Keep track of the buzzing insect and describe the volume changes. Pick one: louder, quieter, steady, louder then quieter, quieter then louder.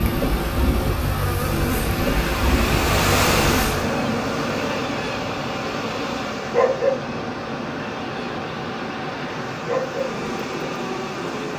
steady.